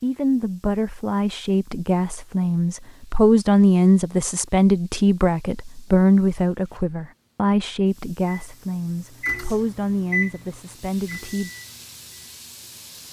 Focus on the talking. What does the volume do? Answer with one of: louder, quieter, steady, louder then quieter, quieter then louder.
louder then quieter.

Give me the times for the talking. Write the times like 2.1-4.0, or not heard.
0.0-11.5.